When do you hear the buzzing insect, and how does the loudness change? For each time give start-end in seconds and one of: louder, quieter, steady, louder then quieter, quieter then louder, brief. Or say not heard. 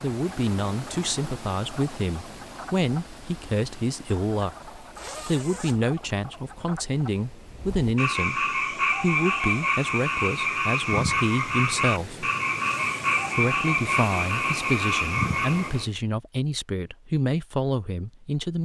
not heard.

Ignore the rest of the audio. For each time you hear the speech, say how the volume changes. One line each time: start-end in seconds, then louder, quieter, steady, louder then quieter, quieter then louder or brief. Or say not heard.
0.0-12.3 steady
13.3-18.5 steady.